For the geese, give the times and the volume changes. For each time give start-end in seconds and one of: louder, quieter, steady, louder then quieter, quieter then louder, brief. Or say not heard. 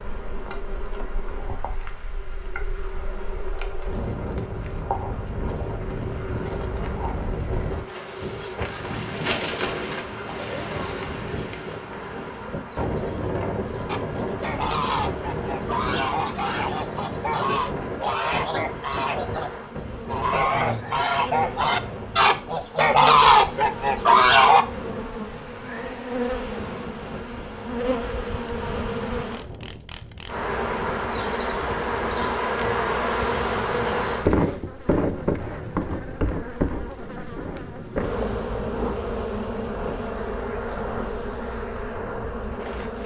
13.8-24.6 louder.